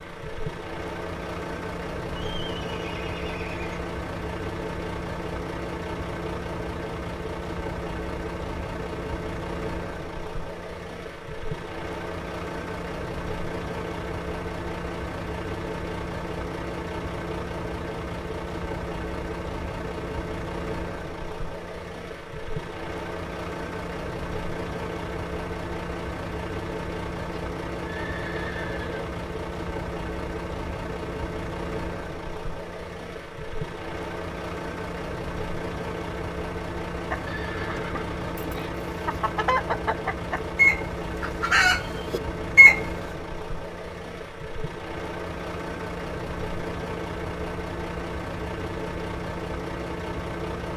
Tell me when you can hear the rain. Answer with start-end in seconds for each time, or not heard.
not heard.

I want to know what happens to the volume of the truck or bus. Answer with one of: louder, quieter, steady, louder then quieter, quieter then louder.
steady.